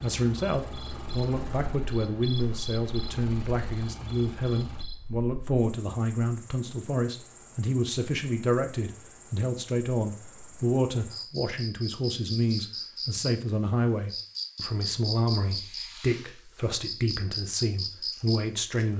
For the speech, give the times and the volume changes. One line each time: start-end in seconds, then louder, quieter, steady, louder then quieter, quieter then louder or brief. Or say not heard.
0.0-18.9 steady.